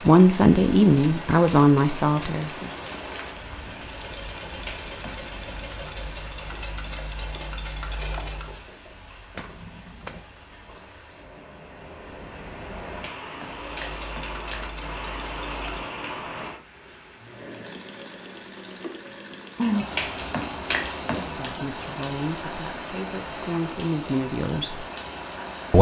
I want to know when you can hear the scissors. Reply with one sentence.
You can hear the scissors from 9.3 to 10.2 s.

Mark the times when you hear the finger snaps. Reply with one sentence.
You can hear the finger snaps from 4.6 to 5.2 s, from 13.0 to 14.7 s and from 19.9 to 21.5 s.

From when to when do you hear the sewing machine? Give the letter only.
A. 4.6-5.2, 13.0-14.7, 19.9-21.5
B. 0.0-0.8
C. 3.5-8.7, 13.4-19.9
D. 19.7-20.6
C.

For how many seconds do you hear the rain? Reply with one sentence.
The rain can be heard for 26 seconds in total.